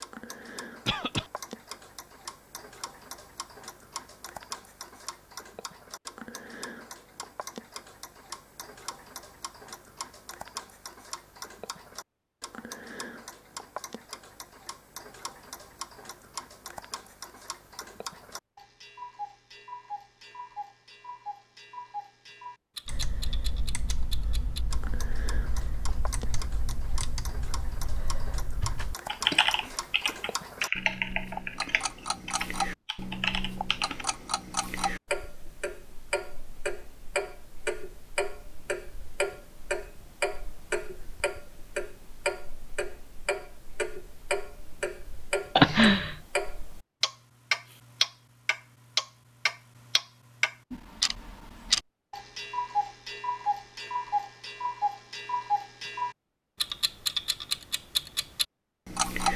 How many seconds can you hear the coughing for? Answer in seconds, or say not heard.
2 s.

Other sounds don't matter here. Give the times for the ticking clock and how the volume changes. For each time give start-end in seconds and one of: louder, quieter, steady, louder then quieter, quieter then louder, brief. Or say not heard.
0.0-59.3 louder.